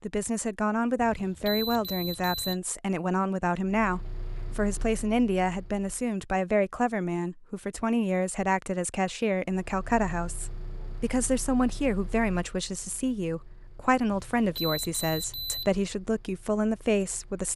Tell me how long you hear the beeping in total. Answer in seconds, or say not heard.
3 s.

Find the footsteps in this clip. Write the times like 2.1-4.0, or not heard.
not heard.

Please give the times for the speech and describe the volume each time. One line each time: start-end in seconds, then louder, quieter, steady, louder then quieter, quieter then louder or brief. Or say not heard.
0.0-17.5 steady.